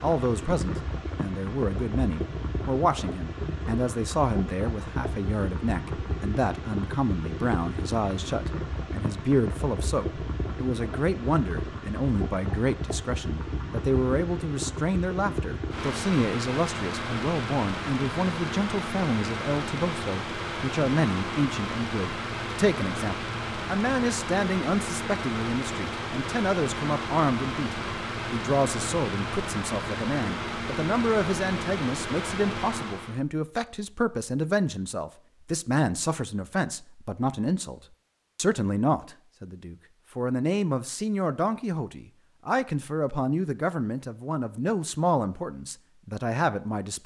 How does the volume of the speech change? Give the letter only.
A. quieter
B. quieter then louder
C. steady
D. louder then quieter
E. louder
C.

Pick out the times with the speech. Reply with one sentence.
You can hear the speech from 0.0 to 47.0 s.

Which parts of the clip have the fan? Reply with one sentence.
You can hear the fan from 0.0 to 33.2 s.